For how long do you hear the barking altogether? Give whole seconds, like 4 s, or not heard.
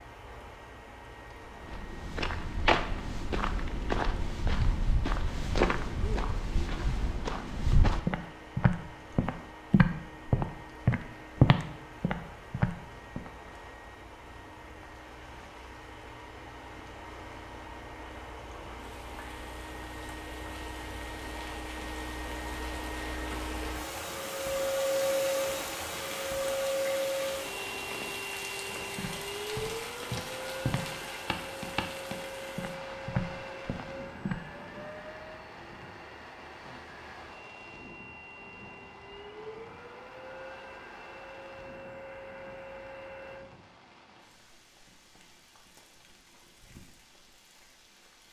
not heard.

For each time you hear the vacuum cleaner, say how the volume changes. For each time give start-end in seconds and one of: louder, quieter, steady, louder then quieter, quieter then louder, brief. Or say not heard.
0.0-43.5 louder then quieter.